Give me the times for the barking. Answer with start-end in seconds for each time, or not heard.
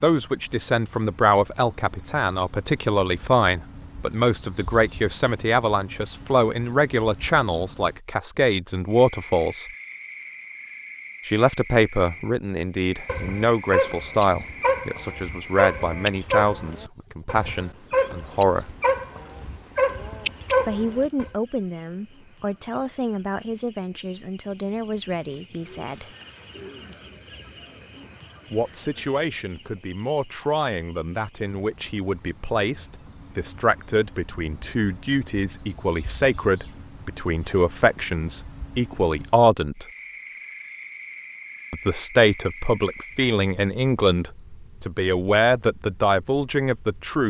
13.1-21.3.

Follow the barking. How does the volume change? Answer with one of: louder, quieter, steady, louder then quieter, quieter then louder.
quieter then louder.